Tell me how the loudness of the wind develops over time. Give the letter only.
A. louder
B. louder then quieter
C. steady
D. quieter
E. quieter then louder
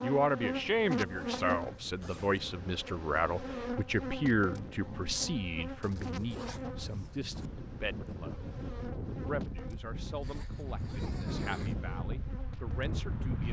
A.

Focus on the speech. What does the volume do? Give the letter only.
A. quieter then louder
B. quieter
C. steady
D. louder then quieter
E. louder
B.